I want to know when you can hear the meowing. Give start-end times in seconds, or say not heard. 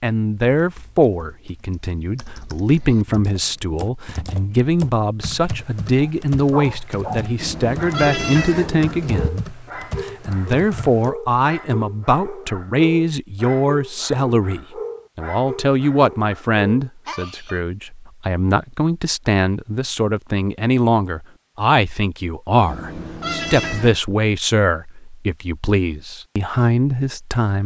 7.4-9.3, 22.6-24.0.